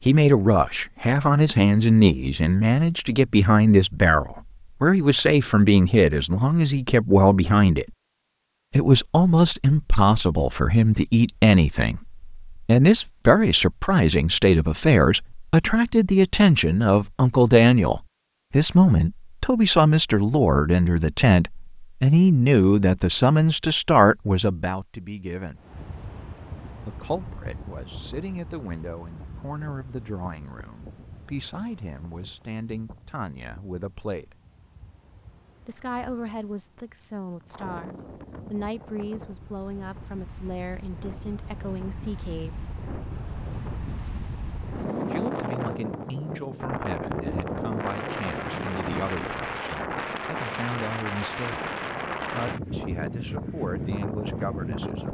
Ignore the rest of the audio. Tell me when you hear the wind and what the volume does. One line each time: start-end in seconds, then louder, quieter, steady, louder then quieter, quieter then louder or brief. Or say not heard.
25.6-55.0 quieter then louder.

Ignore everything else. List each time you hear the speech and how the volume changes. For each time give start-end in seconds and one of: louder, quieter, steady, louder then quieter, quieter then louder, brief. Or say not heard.
0.1-7.8 steady
8.7-25.6 steady
26.9-34.4 steady
35.6-42.9 steady
45.1-51.7 steady
52.3-55.0 brief.